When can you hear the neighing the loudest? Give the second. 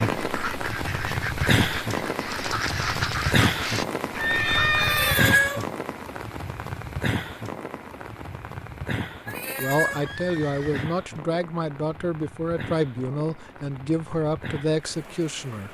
5 s.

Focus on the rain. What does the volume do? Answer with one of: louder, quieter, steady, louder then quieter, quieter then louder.
quieter.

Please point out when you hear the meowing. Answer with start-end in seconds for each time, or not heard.
4.8-5.7, 9.2-10.1.